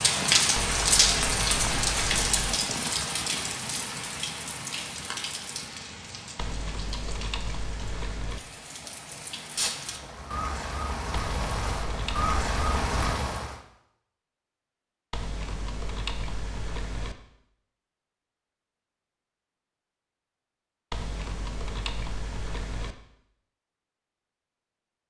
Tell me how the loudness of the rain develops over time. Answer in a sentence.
The volume of the rain goes down, then up.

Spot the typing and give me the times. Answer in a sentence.
You can hear the typing from 0.6 to 2.5 s, from 6.3 to 8.4 s, from 11.1 to 12.9 s, from 15.1 to 17.1 s and from 20.9 to 22.9 s.